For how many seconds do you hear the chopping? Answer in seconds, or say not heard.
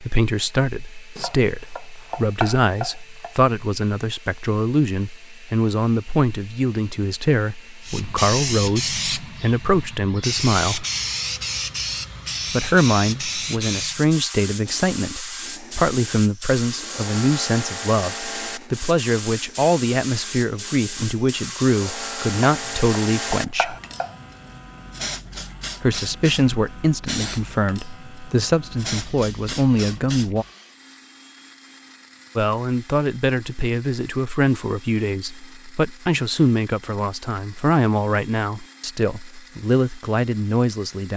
4 s.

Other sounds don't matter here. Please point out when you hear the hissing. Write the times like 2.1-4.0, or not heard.
7.8-30.4.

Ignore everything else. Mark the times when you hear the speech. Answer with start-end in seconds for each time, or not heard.
0.0-10.8, 12.5-23.8, 25.8-30.4, 32.4-41.1.